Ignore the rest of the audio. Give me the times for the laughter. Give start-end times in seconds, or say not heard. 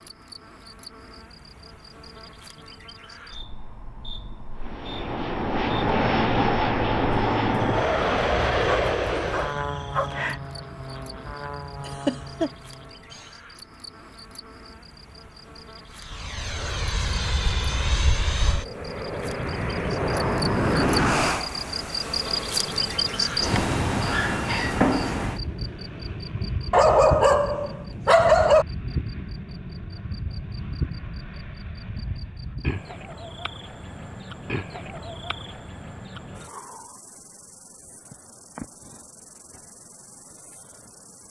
11.8-12.5.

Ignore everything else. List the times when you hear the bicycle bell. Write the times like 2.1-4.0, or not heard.
not heard.